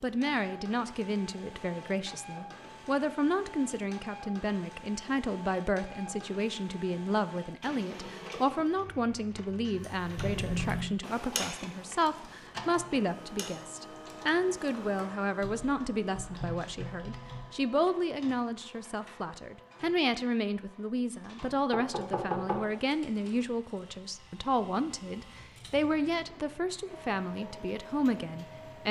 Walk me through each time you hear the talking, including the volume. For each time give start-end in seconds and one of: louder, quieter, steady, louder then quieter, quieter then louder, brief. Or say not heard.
0.0-28.8 steady.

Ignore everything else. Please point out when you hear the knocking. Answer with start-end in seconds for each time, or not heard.
21.4-22.6.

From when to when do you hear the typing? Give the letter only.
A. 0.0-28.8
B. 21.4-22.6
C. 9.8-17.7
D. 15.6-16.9
C.